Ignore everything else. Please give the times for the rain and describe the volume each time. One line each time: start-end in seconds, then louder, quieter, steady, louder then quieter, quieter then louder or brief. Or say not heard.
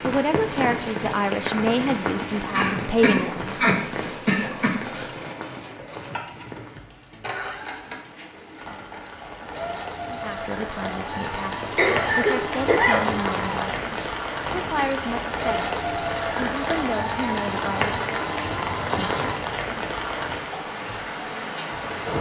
0.0-22.1 quieter then louder.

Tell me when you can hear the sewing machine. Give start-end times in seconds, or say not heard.
0.0-19.4.